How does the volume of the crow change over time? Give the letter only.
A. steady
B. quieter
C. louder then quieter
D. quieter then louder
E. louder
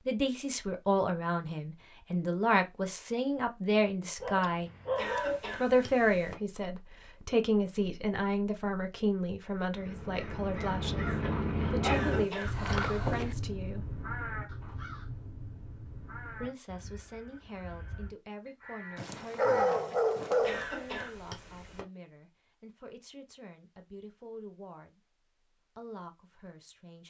B.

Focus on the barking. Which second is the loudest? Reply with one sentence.
The volume of the barking peaks at 20 seconds.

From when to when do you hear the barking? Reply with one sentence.
The barking can be heard from 4.2 to 5.4 s, from 11.8 to 13.3 s and from 18.9 to 20.6 s.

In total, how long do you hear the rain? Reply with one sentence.
You can't hear the rain here.